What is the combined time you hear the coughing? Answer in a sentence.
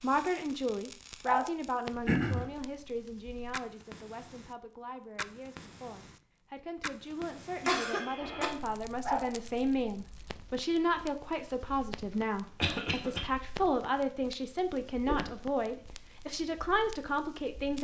You can hear the coughing for 2 seconds altogether.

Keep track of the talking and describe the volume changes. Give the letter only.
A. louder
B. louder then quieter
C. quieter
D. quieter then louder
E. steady
D.